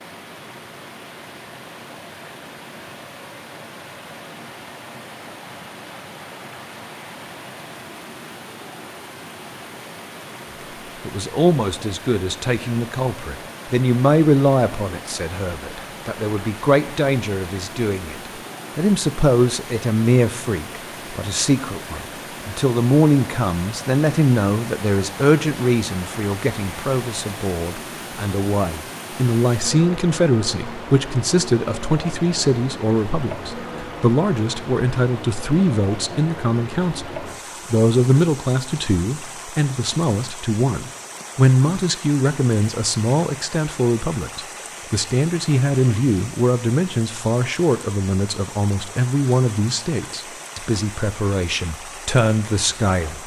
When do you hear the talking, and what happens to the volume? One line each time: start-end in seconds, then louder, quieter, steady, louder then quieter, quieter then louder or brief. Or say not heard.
11.1-53.2 steady.